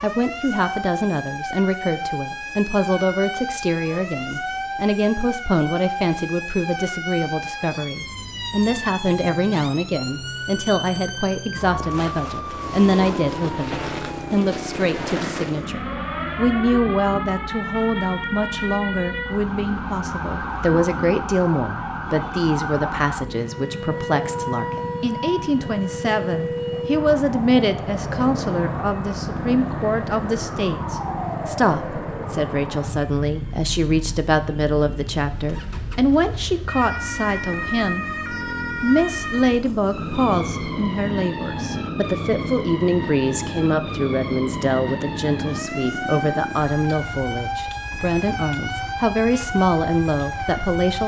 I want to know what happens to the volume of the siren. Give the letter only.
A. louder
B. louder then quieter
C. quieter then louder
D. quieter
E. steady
E.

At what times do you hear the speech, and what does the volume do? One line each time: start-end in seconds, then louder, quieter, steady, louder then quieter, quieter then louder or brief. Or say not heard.
0.0-38.1 steady
38.7-51.0 steady.